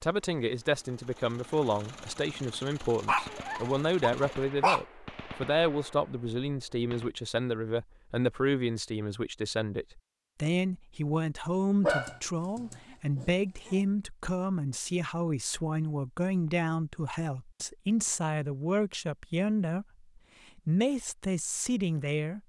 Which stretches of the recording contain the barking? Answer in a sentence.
You can hear the barking from 3.0 to 4.8 s and from 11.8 to 13.8 s.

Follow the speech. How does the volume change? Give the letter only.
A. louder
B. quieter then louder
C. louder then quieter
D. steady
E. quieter
D.